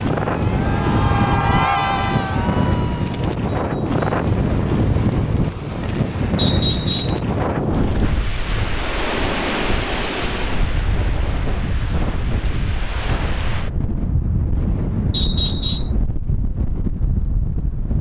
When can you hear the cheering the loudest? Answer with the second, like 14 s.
2 s.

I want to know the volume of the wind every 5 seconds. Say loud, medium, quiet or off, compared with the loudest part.
loud, loud, medium, medium.